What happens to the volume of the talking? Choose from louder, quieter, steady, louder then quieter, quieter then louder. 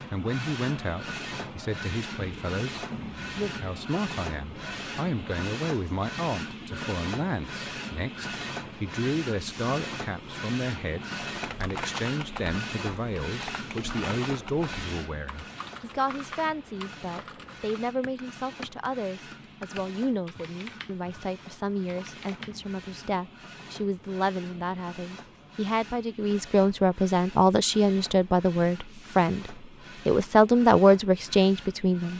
louder.